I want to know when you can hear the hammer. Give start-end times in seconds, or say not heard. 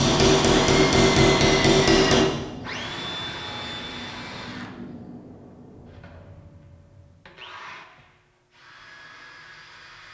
0.0-2.2.